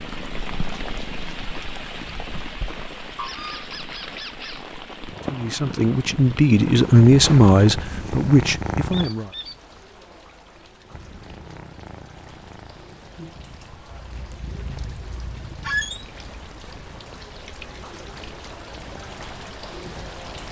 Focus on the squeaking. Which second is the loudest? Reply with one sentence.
The volume of the squeaking peaks at 16 seconds.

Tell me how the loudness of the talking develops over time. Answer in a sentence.
The loudness of the talking goes up, then down.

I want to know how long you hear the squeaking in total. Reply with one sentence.
You can hear the squeaking for 3 seconds altogether.